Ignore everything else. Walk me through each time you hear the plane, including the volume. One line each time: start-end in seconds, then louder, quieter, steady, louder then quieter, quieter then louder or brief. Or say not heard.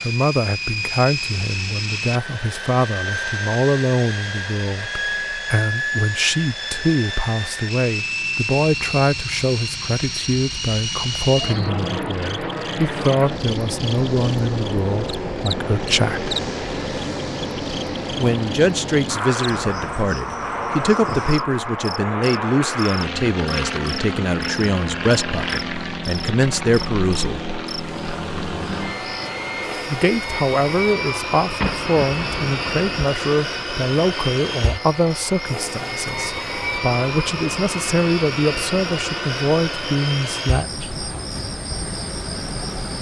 0.0-42.9 steady.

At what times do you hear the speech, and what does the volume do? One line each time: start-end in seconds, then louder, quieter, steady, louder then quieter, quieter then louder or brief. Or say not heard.
0.0-16.4 steady
18.1-27.4 steady
29.9-41.0 steady.